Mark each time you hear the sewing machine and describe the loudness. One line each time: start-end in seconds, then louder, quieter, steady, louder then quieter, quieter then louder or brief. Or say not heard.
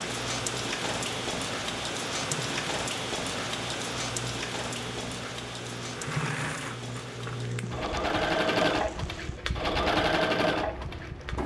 0.0-11.4 louder.